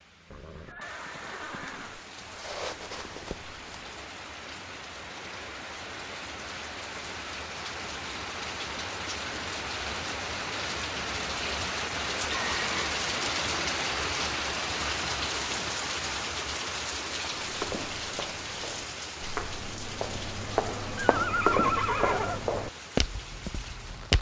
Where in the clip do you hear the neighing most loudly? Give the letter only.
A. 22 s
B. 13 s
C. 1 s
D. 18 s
A.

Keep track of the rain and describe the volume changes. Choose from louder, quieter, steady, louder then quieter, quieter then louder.
louder then quieter.